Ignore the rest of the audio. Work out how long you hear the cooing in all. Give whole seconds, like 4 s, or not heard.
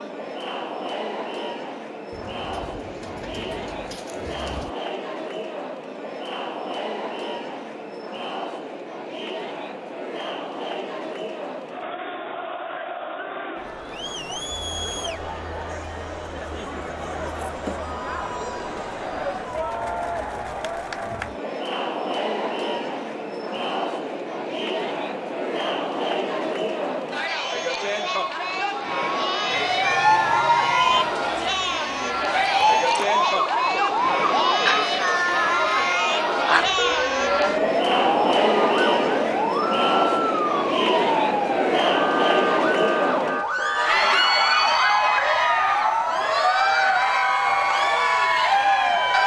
3 s.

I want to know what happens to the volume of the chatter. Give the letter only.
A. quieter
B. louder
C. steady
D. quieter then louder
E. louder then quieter
B.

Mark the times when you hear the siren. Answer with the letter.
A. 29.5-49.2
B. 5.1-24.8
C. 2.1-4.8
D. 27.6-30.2
A.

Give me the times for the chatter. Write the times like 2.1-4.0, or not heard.
0.0-49.2.